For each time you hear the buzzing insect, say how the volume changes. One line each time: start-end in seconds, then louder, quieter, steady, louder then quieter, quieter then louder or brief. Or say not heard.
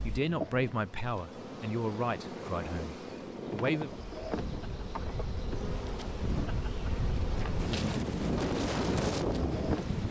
0.0-10.0 steady.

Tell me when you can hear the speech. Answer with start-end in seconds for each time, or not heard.
0.0-4.0.